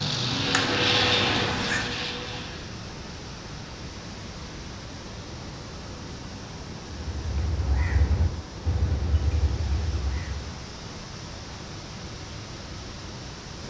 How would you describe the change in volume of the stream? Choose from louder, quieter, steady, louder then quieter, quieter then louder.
steady.